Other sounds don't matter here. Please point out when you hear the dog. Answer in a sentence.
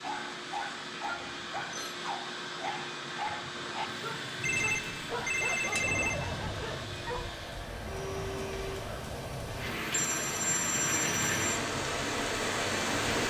You can hear the dog from 0.0 to 7.2 s.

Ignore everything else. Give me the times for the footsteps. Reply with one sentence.
You can't hear the footsteps here.